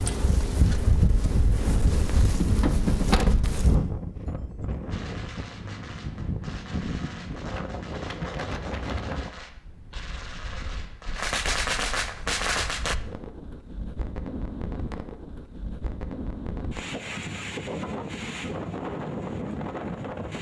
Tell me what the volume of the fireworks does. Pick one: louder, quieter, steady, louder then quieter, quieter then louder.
louder.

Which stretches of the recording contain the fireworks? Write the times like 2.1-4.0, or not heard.
4.9-12.9.